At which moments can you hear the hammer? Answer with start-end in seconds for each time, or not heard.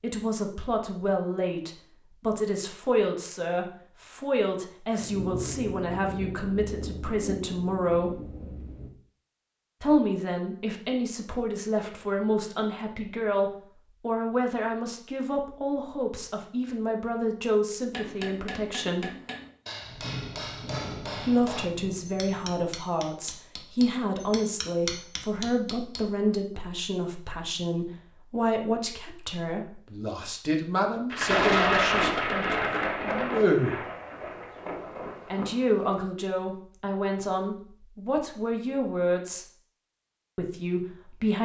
17.9-26.1.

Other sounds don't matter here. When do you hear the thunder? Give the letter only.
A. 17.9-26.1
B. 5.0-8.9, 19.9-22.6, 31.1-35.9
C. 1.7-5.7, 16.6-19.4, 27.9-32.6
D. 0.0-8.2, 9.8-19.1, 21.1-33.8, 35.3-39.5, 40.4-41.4
B.